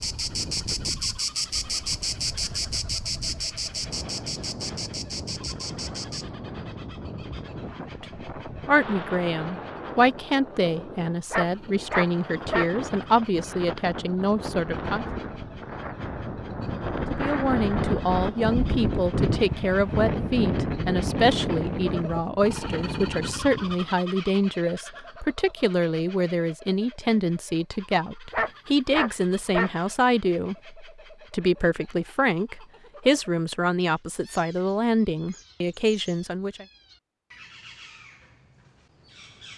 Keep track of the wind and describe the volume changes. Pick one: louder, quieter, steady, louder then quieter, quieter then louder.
louder.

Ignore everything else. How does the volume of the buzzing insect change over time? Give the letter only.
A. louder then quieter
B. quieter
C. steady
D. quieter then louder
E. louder
B.